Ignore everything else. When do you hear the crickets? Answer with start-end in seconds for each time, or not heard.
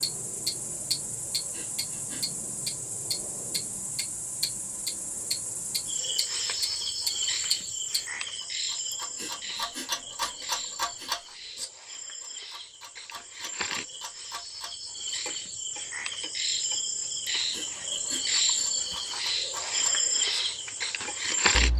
0.0-21.7.